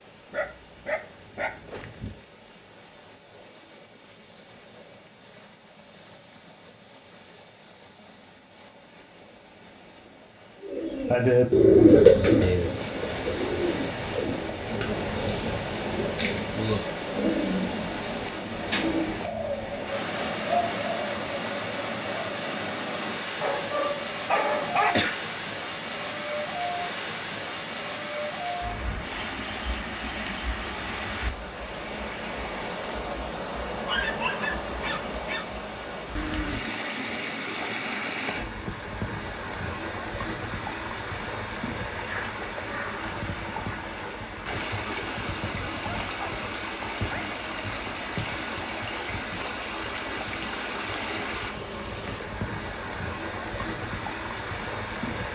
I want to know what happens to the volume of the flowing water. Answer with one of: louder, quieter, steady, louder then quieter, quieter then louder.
louder.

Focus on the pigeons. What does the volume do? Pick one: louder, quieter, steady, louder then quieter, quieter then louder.
quieter.